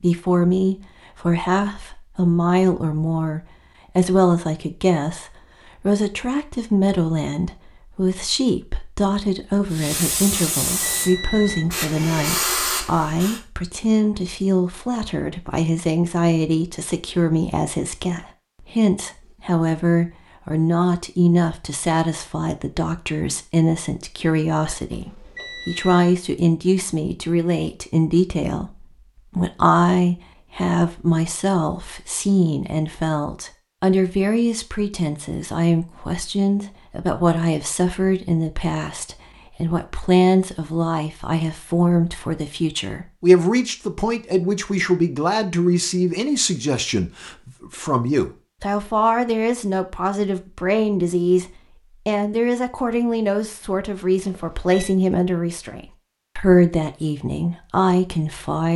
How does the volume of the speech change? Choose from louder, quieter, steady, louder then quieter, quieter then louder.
steady.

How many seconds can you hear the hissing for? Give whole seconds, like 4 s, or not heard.
4 s.